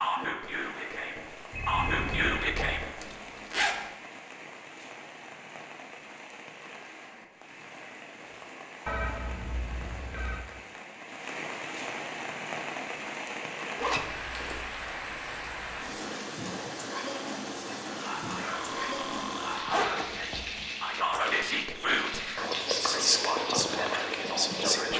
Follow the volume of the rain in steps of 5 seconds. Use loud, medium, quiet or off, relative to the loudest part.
medium, medium, loud, loud, loud.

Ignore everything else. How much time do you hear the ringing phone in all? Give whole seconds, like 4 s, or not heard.
4 s.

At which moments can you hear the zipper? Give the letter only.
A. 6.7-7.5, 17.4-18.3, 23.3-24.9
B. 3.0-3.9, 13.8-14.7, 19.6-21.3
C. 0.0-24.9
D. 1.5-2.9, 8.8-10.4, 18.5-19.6
B.